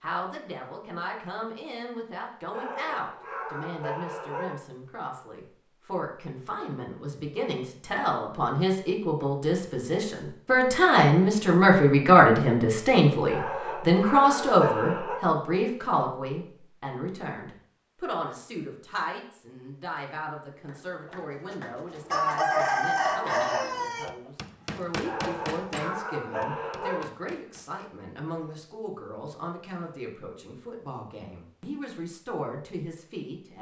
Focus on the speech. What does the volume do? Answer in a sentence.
The loudness of the speech goes up, then down.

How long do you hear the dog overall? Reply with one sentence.
You can hear the dog for 6 seconds altogether.